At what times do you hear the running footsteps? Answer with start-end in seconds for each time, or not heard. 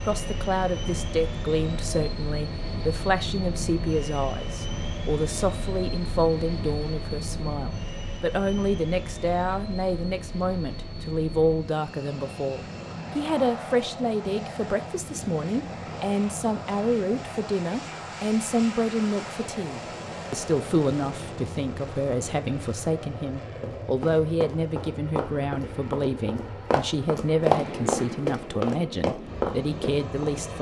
23.6-30.3.